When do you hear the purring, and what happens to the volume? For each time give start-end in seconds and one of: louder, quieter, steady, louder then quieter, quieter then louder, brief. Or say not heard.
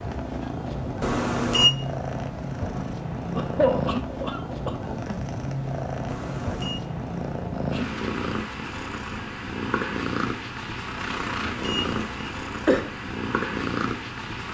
0.0-14.4 steady.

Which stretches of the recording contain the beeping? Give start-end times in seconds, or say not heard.
1.0-1.7, 6.0-6.8, 11.1-12.2.